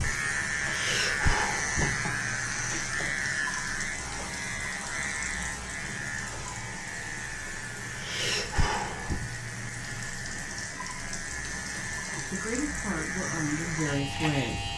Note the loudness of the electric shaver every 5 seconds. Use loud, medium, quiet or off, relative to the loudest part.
loud, medium, medium.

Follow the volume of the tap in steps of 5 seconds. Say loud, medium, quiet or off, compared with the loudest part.
loud, loud, medium.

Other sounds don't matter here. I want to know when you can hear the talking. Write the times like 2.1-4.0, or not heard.
12.3-14.7.